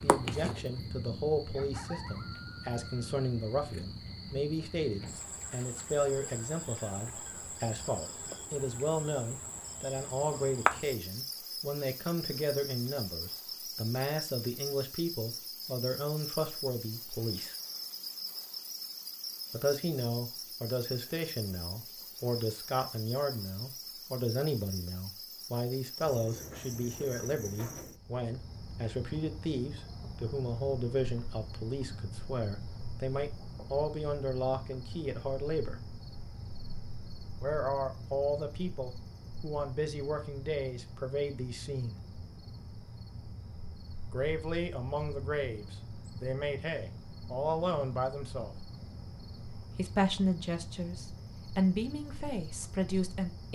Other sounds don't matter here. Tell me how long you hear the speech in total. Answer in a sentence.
You can hear the speech for 47 seconds altogether.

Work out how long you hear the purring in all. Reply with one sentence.
The purring can't be heard in this clip.